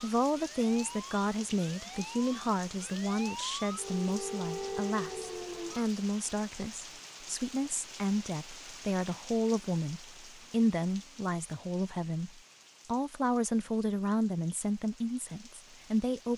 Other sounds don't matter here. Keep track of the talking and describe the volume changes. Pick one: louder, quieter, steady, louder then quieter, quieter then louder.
steady.